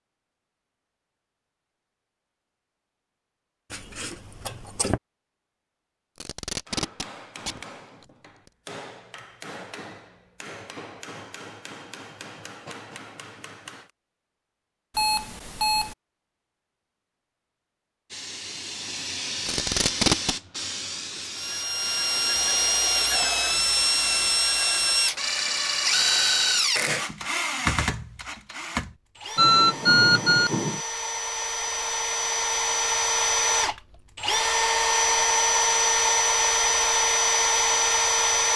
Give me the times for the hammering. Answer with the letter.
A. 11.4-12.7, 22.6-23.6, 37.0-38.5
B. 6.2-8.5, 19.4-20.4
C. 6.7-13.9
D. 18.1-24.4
C.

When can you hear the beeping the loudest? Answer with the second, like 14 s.
30 s.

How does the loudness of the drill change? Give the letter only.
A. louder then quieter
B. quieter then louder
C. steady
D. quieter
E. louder
B.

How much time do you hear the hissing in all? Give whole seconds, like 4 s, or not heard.
6 s.